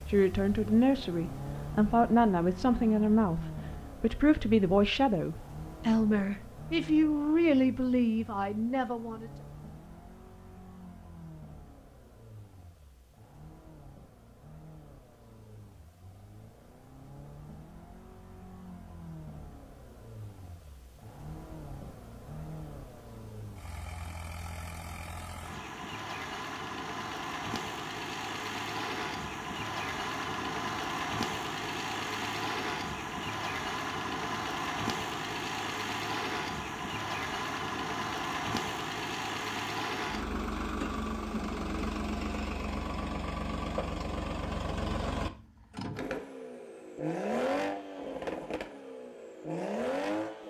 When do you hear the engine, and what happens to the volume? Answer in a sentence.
You can hear the engine from 0.0 to 50.4 s, getting quieter then louder.